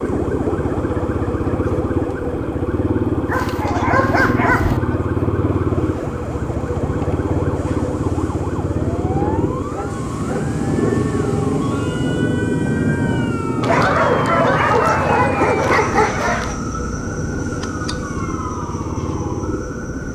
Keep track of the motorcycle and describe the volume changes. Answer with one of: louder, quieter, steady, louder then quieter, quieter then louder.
quieter.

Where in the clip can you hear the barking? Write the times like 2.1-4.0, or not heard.
3.3-4.8, 9.2-11.0, 13.6-16.6.